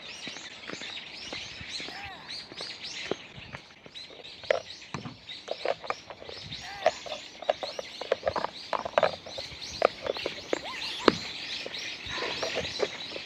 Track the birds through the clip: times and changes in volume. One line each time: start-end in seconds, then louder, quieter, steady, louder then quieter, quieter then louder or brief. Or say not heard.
0.0-13.2 louder.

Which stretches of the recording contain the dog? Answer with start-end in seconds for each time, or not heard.
not heard.